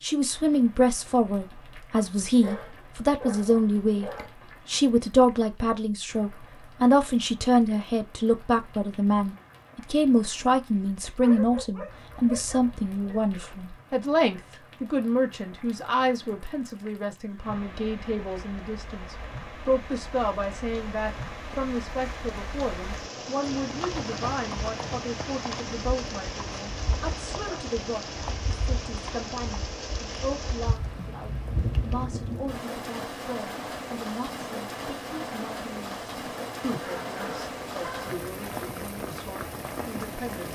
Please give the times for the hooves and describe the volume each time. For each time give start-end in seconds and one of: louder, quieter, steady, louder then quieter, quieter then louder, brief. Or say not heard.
23.4-32.0 quieter.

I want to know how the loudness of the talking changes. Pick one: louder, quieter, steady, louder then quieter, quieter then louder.
quieter.